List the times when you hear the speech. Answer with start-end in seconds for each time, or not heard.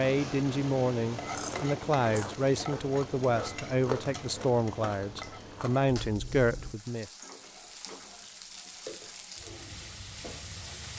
0.0-7.1.